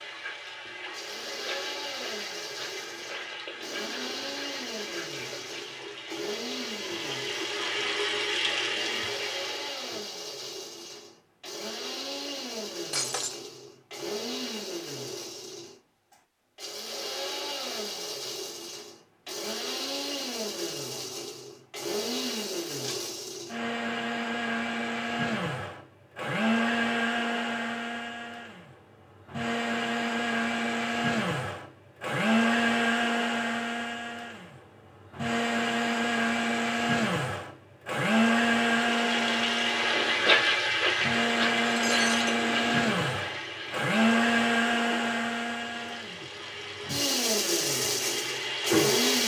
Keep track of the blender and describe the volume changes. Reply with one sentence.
The volume of the blender goes up.